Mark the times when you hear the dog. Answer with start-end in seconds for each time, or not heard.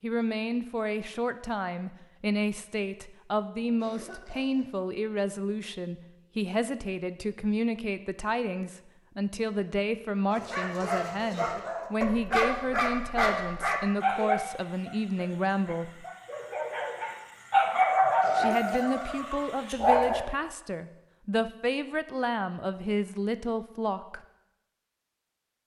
10.3-20.2.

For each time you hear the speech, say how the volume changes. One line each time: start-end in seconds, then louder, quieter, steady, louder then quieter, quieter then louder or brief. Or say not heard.
0.0-16.1 steady
18.4-24.2 steady.